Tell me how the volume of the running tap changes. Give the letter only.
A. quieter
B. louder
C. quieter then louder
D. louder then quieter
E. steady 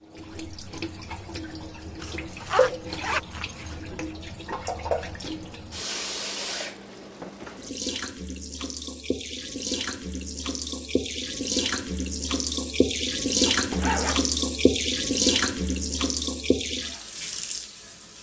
B.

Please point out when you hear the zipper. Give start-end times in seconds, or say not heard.
2.0-3.8, 13.4-14.3.